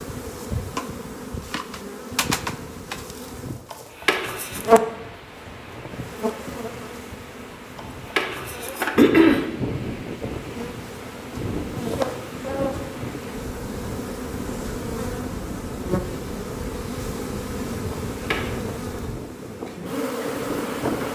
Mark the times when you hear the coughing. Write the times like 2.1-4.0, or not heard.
3.7-4.7, 7.8-9.5, 17.9-18.6.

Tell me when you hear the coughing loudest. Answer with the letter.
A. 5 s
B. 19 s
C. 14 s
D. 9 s
D.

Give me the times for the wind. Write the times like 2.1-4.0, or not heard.
4.2-21.1.